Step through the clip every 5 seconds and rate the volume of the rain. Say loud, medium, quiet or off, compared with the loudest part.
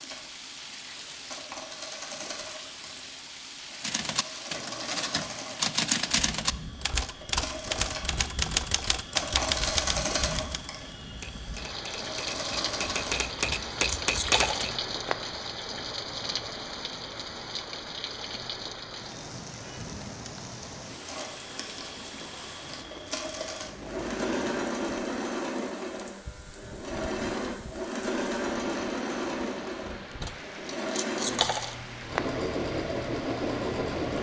medium, medium, loud, loud, medium, medium, medium.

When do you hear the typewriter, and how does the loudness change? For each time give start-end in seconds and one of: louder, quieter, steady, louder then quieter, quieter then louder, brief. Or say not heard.
3.8-14.8 quieter then louder.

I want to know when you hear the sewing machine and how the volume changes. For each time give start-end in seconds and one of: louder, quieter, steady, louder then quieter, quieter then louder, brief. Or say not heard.
0.0-13.3 louder then quieter
21.0-34.1 louder.